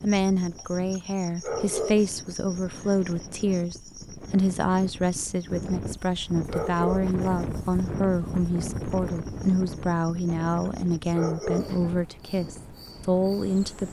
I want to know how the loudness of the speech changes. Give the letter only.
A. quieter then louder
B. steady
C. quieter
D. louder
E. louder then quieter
B.